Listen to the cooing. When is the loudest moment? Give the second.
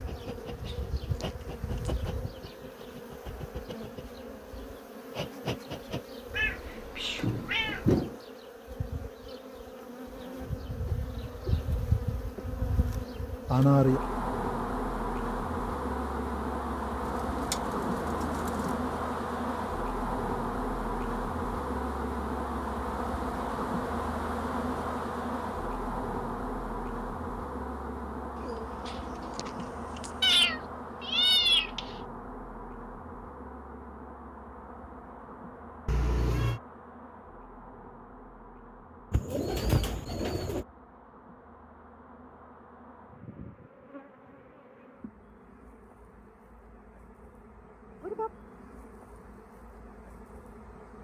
40 s.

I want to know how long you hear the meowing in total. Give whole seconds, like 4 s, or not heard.
4 s.